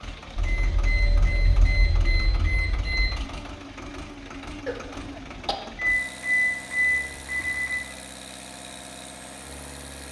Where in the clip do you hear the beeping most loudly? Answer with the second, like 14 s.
6 s.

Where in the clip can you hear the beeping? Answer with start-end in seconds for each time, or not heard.
0.3-3.1, 6.0-7.8.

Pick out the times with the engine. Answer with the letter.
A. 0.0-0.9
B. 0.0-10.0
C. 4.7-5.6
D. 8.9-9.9
B.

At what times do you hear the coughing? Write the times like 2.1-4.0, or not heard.
4.7-5.6.